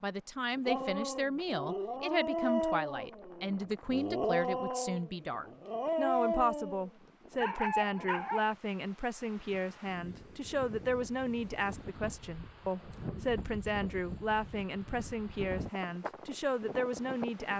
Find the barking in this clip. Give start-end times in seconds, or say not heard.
0.7-8.6.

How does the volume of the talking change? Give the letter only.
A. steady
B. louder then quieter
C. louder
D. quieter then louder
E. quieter
A.